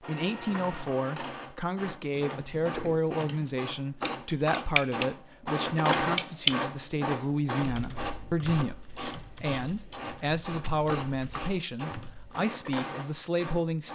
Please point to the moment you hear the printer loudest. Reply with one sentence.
The loudest moment of the printer is at 6 seconds.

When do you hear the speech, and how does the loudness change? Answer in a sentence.
You can hear the speech from 0.1 to 13.8 s, at a steady volume.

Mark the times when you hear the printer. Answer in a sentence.
You can hear the printer from 0.0 to 13.8 s.